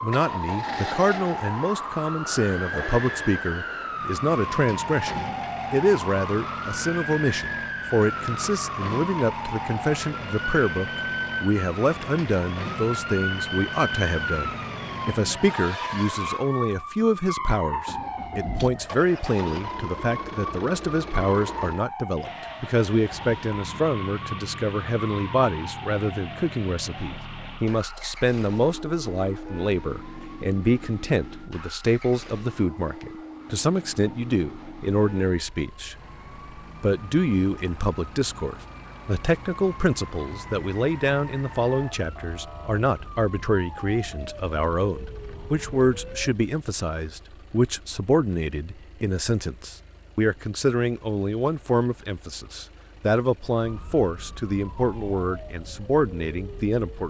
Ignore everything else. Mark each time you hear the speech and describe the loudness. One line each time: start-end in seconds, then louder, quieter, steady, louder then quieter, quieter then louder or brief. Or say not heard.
0.0-36.0 steady
36.8-57.0 steady.